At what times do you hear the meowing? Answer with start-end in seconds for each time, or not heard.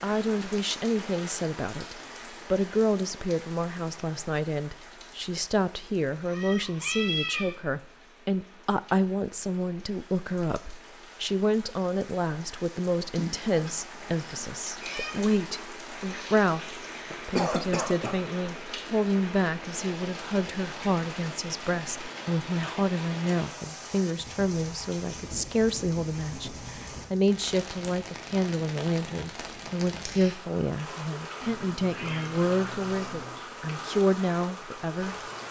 6.2-7.5, 13.2-15.2, 31.4-33.4.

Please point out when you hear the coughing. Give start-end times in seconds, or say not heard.
17.1-18.1.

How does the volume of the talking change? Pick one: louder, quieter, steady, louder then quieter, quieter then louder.
steady.